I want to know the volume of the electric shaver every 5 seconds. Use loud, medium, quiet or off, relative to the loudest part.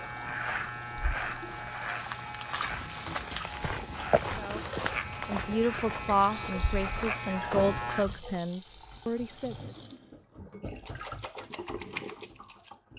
loud, loud, off.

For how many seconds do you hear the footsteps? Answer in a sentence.
The footsteps can be heard for 7 seconds in total.